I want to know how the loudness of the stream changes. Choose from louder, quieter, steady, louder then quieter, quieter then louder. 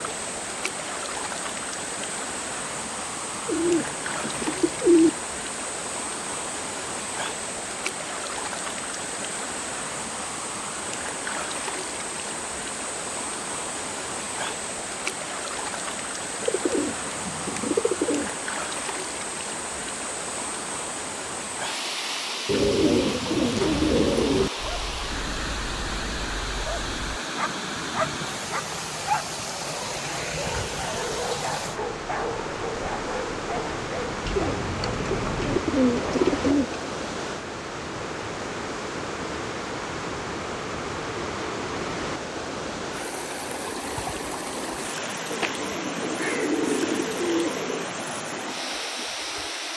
steady.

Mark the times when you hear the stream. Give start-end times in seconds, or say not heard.
0.0-49.7.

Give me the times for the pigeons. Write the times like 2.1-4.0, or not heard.
3.5-5.1, 16.4-18.3, 22.4-24.5, 34.2-36.8, 45.3-47.9.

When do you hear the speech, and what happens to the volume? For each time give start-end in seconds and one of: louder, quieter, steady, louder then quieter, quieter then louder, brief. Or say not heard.
not heard.